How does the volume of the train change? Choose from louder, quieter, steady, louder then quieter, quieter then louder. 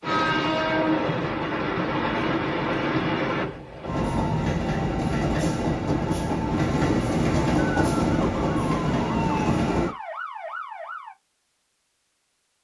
steady.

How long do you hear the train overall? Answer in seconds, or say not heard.
10 s.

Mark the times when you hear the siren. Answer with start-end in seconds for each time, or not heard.
7.6-11.2.